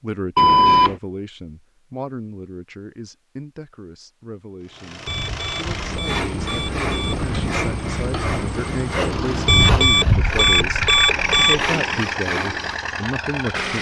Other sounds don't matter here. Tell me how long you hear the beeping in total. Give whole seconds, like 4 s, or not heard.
5 s.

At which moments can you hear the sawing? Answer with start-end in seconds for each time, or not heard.
5.8-12.8.